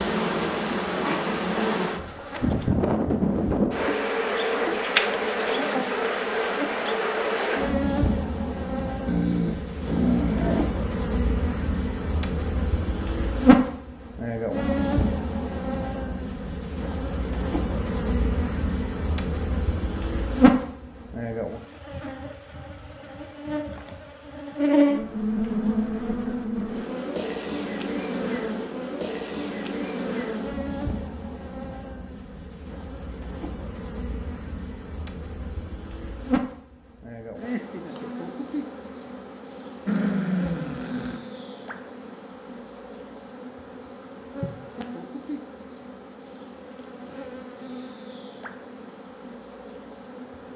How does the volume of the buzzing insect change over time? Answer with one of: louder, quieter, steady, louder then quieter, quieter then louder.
quieter.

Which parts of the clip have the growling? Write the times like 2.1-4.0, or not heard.
9.1-10.7, 39.9-41.2.